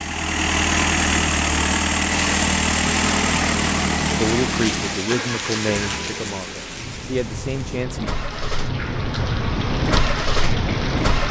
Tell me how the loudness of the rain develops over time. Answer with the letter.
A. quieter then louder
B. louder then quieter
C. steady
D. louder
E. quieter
A.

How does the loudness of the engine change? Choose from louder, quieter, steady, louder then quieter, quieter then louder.
quieter then louder.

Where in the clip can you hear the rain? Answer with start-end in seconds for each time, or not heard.
2.0-11.2.